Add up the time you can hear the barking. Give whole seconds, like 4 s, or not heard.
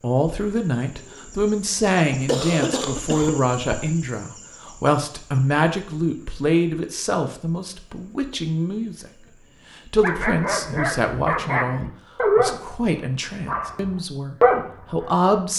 4 s.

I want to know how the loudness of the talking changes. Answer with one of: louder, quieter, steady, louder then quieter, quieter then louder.
steady.